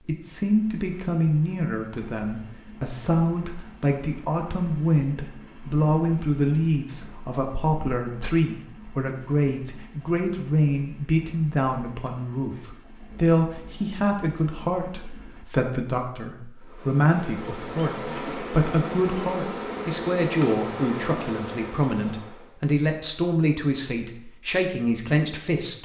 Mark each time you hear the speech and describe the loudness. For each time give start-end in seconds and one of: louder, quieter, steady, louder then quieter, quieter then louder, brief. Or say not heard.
0.1-25.7 steady.